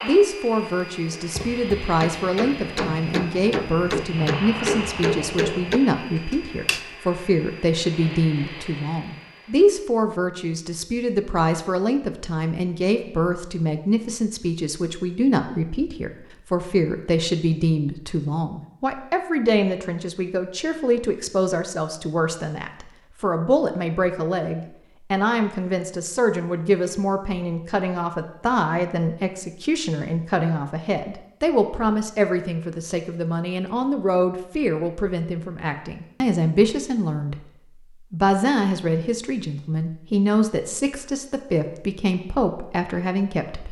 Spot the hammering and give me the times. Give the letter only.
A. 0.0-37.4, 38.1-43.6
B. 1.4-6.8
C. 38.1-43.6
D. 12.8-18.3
B.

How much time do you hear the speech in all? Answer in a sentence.
You can hear the speech for 43 seconds altogether.